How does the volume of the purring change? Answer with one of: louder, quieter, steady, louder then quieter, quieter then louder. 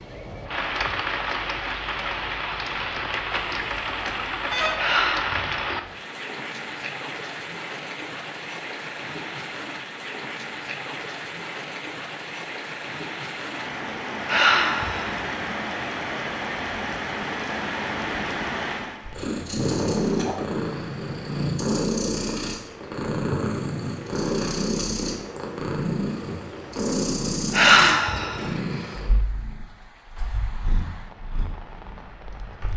quieter.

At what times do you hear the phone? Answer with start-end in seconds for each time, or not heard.
3.3-4.8.